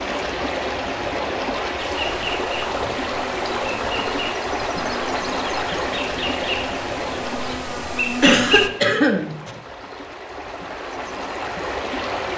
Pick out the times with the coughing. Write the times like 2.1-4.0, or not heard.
8.2-9.6.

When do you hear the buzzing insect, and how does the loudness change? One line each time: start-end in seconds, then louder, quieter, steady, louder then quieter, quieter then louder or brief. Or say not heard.
1.8-8.7 louder.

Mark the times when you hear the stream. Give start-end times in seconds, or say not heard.
0.0-12.3.